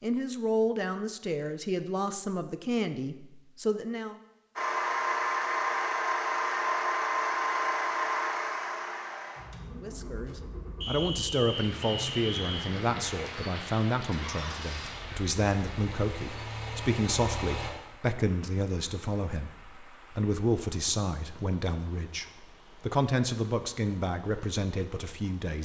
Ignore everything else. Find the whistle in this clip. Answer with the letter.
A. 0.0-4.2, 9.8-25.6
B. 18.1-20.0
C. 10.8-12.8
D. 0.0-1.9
C.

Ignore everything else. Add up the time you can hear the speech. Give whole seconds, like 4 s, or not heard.
20 s.